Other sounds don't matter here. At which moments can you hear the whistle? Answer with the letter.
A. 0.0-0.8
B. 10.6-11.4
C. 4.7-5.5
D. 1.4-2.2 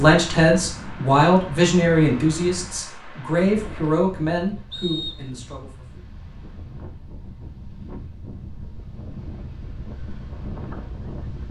C.